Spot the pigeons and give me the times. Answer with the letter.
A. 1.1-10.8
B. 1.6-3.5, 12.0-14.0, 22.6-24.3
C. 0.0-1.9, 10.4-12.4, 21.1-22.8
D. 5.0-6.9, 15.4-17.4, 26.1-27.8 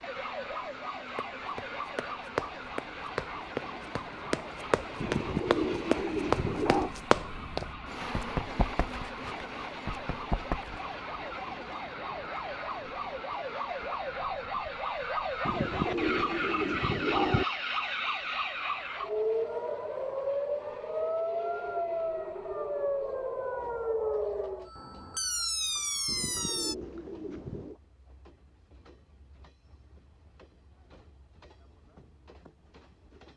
D.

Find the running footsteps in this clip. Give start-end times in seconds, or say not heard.
1.1-10.8.